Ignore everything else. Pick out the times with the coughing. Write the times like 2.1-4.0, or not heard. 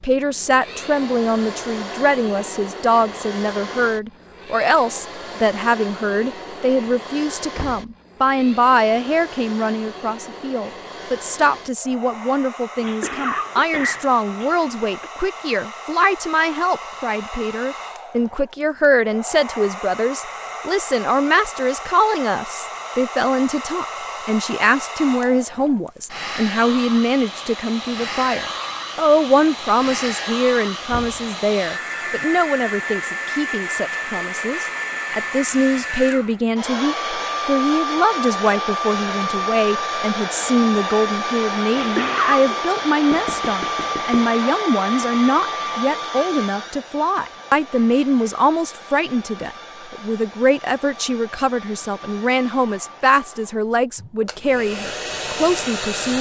12.8-15.1, 41.8-42.5.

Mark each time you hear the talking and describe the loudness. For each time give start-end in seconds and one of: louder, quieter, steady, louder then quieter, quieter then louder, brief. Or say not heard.
0.0-56.1 steady.